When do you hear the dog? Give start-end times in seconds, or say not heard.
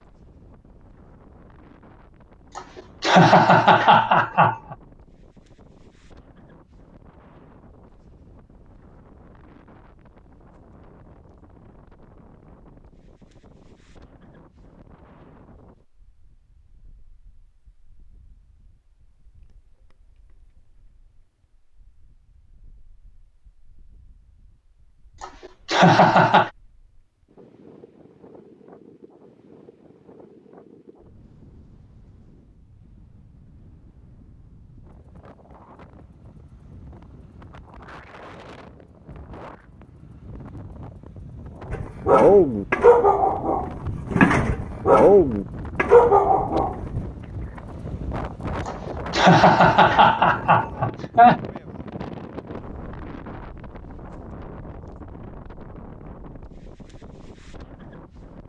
41.7-47.0.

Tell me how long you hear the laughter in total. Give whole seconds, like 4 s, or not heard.
6 s.